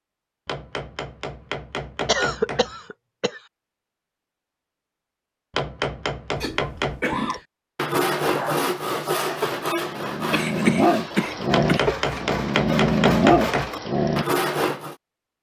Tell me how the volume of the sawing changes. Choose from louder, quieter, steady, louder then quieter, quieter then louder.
quieter then louder.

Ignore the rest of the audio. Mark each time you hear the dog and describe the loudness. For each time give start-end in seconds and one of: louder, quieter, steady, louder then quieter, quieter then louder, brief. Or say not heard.
8.3-14.4 louder.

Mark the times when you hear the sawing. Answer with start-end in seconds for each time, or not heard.
7.3-14.9.